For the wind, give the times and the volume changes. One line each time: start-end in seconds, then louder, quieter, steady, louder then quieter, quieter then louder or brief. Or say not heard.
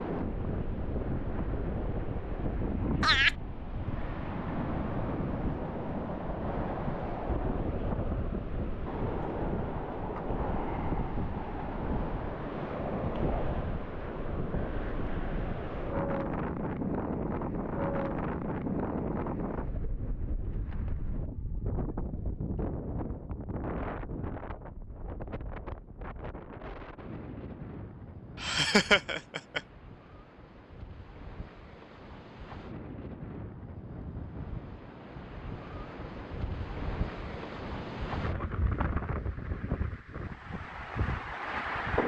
0.0-42.0 quieter then louder.